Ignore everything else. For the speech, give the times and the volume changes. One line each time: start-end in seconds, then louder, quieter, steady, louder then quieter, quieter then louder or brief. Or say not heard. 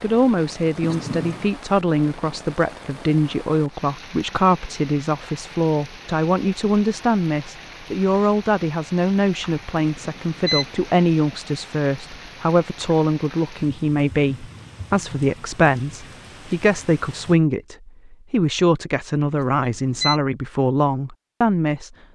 0.0-21.9 steady.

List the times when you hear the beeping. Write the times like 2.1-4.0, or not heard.
0.8-1.4, 9.8-10.8, 19.3-20.2.